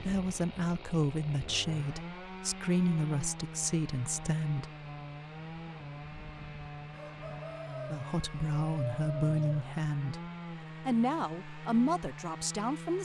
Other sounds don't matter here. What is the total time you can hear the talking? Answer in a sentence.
The talking can be heard for 10 seconds in total.